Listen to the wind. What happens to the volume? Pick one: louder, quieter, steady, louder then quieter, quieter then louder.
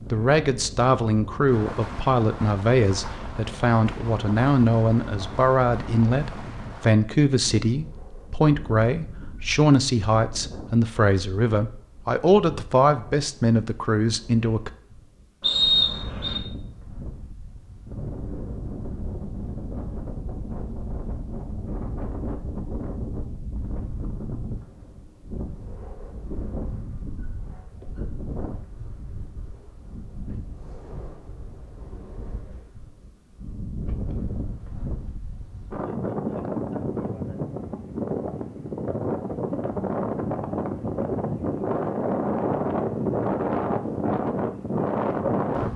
louder.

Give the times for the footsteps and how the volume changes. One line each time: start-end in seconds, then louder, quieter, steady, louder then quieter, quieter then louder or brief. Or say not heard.
not heard.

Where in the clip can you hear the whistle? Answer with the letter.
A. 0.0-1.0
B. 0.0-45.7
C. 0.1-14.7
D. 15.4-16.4
D.